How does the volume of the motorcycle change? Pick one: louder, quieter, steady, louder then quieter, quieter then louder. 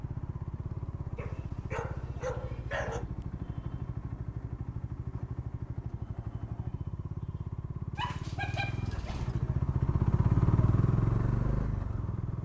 louder.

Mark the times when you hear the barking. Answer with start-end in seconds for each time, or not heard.
1.1-3.0, 8.0-9.3.